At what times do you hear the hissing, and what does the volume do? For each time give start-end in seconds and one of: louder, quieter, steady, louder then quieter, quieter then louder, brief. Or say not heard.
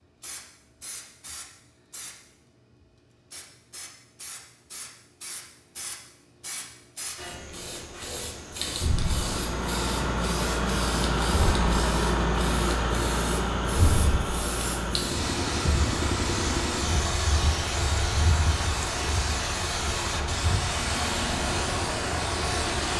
0.2-22.9 louder.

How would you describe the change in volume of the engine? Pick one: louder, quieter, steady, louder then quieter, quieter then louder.
quieter.